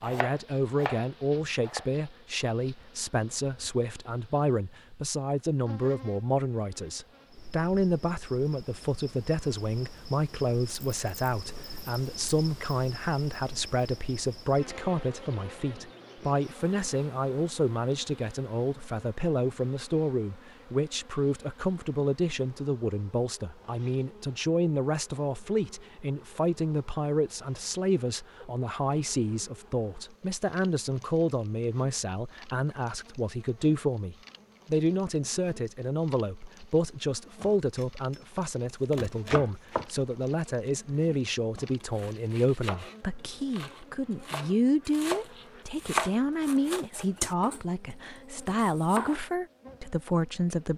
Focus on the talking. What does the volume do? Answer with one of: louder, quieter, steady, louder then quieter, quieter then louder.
steady.